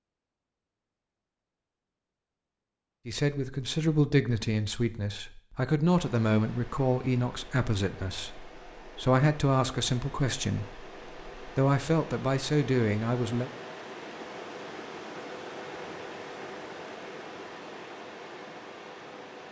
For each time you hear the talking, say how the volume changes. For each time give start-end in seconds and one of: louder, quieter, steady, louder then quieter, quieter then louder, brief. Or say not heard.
3.0-13.5 steady.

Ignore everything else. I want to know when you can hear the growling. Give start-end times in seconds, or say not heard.
not heard.